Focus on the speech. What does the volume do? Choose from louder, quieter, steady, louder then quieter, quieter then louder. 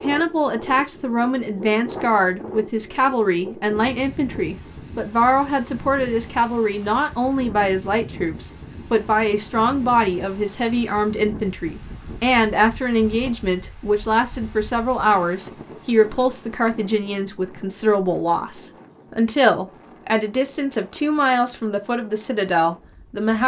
steady.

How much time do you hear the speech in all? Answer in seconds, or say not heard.
23 s.